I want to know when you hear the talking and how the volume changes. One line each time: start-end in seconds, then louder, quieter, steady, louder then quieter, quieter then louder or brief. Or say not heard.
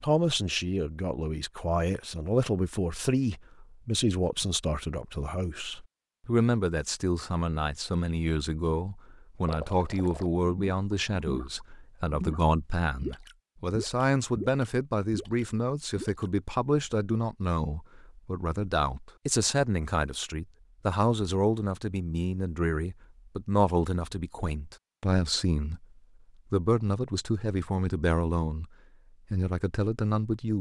0.0-25.9 steady
26.5-28.6 brief
29.3-30.5 brief.